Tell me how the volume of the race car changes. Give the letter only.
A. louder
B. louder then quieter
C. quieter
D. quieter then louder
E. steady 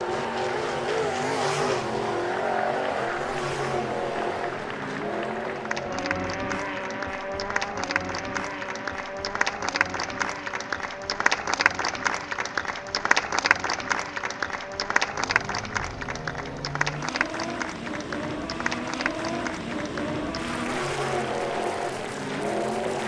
D.